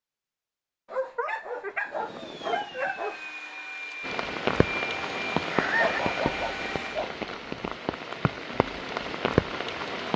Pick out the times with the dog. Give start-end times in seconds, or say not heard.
0.9-3.4, 5.8-7.7.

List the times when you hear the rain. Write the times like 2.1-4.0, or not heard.
4.0-10.1.